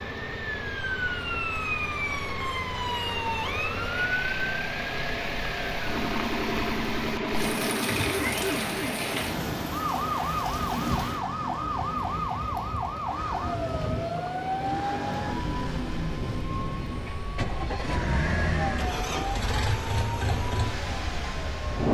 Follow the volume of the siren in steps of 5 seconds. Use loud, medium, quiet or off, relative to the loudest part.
loud, loud, loud, medium, medium.